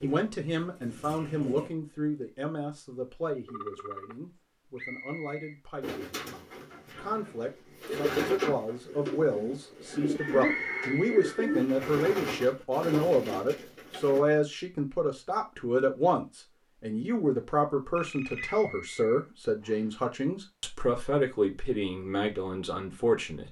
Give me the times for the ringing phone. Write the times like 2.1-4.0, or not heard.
3.5-4.2, 17.9-18.6.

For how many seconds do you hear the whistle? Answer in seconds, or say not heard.
3 s.